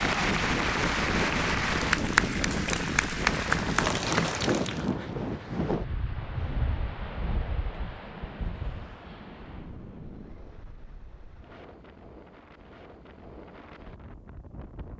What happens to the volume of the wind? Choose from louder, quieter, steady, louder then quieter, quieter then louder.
quieter.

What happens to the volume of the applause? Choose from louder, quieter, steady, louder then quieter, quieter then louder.
steady.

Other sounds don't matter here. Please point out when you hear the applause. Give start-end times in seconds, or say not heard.
0.0-4.8.